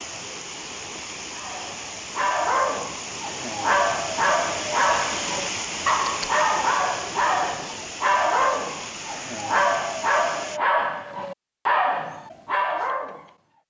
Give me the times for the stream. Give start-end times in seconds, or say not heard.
0.0-10.6.